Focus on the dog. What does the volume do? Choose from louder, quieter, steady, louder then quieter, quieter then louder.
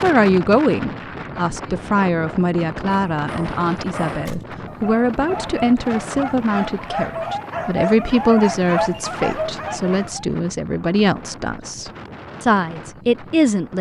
louder.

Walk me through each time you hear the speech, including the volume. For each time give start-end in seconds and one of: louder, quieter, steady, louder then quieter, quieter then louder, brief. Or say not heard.
0.0-13.7 steady.